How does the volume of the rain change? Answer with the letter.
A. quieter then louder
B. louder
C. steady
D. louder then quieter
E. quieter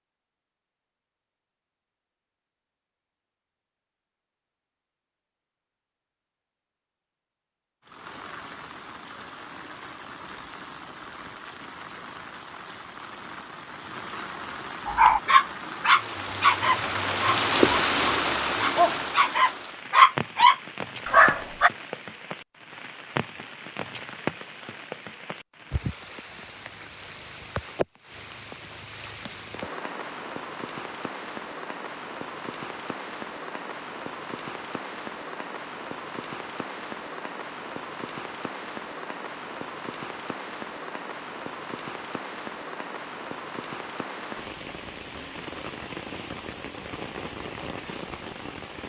D.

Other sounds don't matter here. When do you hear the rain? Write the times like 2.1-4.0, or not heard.
7.8-48.8.